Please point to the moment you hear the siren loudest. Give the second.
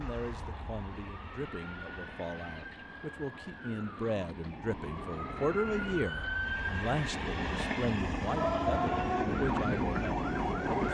9 s.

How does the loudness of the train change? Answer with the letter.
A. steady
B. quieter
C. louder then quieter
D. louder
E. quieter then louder
D.